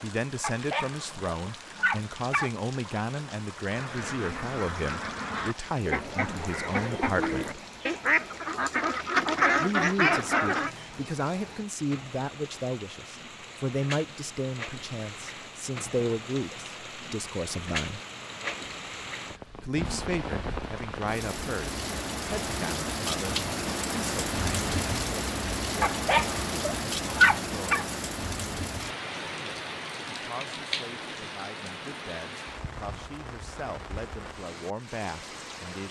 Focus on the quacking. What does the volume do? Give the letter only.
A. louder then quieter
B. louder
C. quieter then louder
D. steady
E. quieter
B.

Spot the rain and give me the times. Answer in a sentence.
The rain can be heard from 0.0 to 35.8 s.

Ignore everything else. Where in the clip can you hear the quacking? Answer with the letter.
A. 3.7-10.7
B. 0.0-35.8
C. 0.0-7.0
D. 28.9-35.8
A.